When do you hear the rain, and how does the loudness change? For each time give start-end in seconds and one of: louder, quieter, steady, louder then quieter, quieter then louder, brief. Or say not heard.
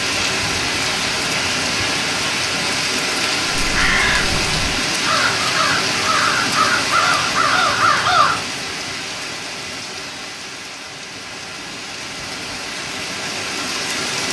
0.0-14.2 quieter.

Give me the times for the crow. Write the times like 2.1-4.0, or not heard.
3.5-8.4.